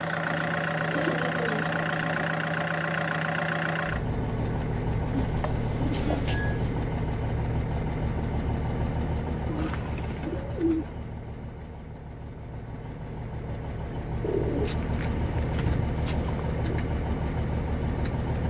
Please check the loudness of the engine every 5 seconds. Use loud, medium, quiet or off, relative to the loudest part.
loud, loud, medium, loud.